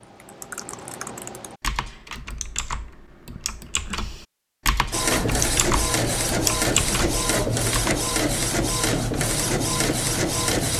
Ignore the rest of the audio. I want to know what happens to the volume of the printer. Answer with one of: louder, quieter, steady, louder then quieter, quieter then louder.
steady.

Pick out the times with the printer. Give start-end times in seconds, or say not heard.
4.9-10.7.